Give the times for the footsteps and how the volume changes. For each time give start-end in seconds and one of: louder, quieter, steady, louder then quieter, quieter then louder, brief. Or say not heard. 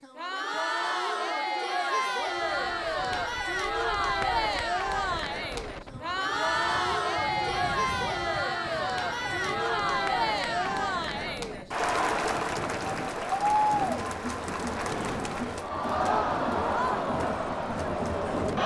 not heard.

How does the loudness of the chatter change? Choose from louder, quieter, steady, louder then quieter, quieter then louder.
steady.